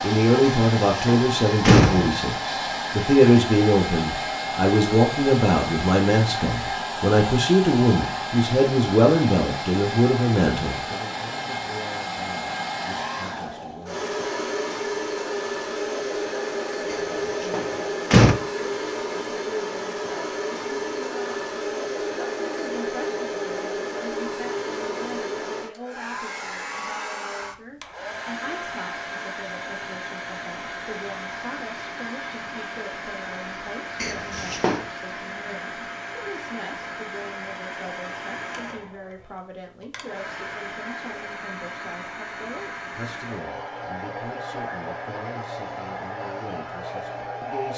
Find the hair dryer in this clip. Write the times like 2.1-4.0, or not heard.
0.0-47.7.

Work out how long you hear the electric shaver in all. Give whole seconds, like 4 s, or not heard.
not heard.